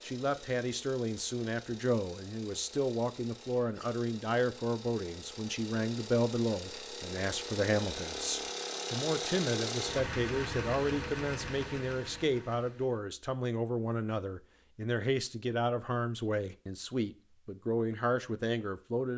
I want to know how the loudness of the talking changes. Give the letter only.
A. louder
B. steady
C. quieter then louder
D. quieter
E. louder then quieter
B.